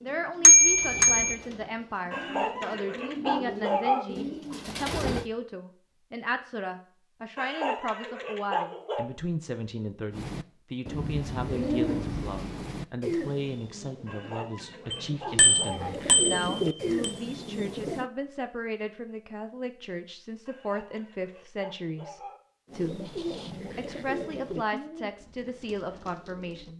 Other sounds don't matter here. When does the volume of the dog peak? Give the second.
4 s.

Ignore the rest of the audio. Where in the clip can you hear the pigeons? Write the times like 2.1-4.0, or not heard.
0.0-5.3, 10.1-18.1, 22.6-26.7.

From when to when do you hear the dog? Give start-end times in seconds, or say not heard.
2.1-4.0, 7.3-9.1, 14.1-15.9, 20.4-22.4.